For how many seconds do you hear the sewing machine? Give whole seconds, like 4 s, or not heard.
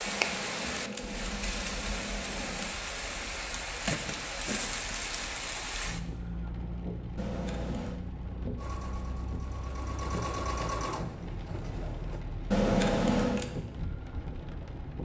4 s.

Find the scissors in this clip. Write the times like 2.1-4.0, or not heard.
0.1-2.7, 7.2-8.0, 12.5-13.4.